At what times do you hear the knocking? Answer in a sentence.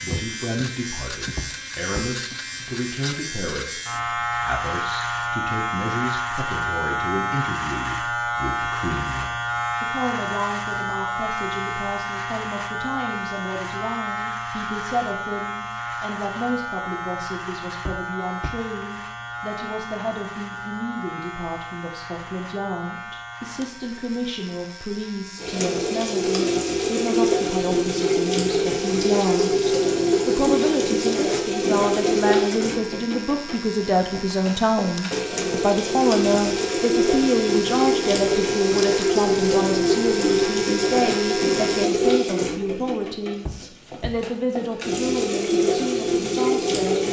You can hear the knocking from 1.4 to 2.1 s, from 17.9 to 18.6 s and from 43.5 to 44.2 s.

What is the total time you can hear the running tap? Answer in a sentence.
The running tap can be heard for 22 seconds in total.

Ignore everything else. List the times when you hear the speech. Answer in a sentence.
You can hear the speech from 0.0 to 47.0 s.